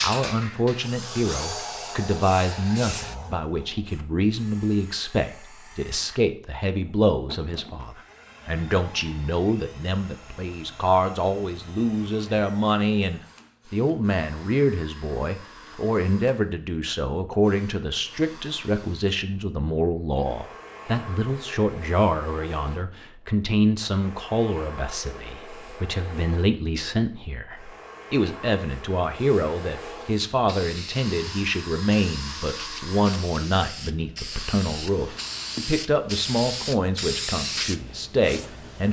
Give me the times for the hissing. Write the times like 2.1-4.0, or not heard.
0.0-3.1, 30.3-38.8.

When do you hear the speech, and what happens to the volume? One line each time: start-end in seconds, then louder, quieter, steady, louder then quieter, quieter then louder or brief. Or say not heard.
0.0-38.8 steady.